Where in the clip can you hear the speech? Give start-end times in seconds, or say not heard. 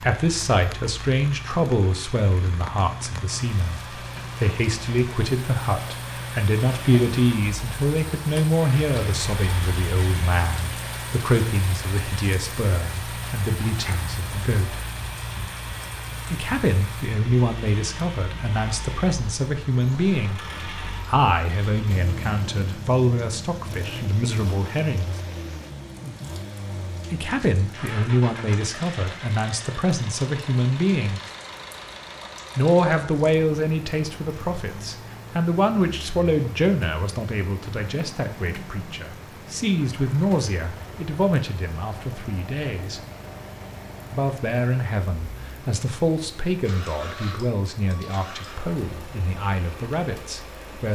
0.0-14.8, 16.3-20.4, 21.1-25.1, 27.1-31.2, 32.5-43.0, 44.1-50.8.